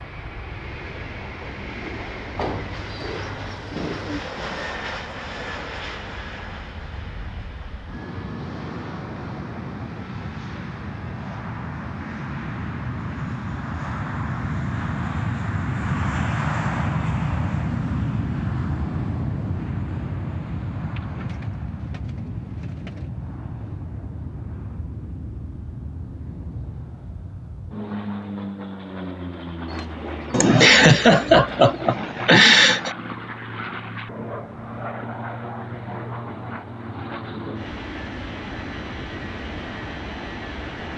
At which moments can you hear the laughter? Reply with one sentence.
The laughter can be heard from 30.3 to 32.9 s.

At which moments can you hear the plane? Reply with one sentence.
You can hear the plane from 0.0 to 40.9 s.